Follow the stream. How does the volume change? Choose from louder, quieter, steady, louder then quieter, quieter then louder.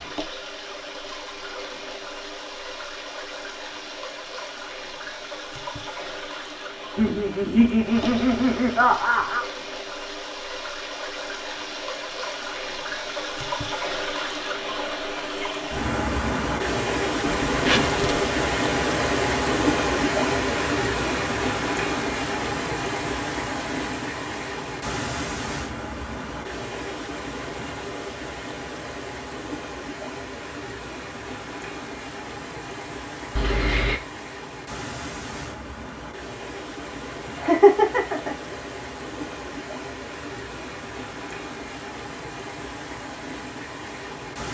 louder then quieter.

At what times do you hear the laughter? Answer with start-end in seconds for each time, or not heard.
7.0-9.4, 37.4-38.4.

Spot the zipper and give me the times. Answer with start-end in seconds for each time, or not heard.
17.4-18.3, 33.4-34.0.